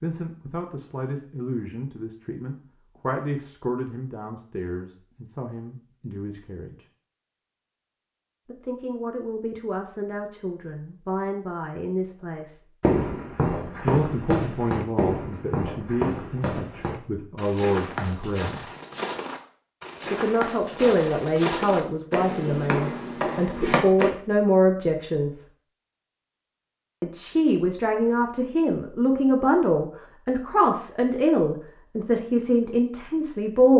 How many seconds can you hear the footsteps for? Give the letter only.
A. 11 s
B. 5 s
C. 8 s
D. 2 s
A.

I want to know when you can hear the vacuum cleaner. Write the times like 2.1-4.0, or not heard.
not heard.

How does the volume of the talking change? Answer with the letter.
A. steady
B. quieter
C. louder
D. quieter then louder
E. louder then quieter
C.